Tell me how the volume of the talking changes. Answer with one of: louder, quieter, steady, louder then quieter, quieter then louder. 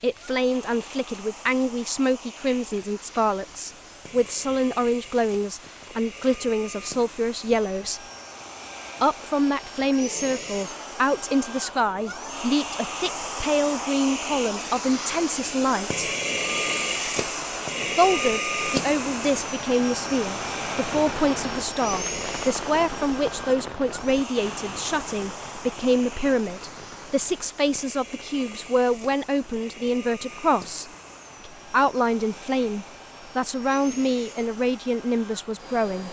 steady.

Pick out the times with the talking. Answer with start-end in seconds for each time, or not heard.
0.0-8.0, 9.0-16.1, 17.9-30.9, 31.7-36.0.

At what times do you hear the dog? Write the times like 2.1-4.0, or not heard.
not heard.